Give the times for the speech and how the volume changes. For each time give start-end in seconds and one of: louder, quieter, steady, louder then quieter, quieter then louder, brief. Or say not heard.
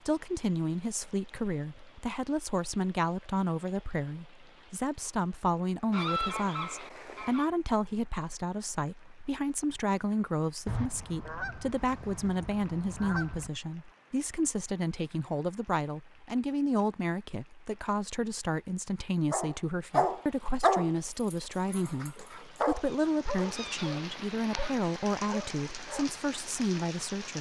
0.1-27.3 steady.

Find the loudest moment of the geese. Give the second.
6 s.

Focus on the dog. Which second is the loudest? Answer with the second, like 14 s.
21 s.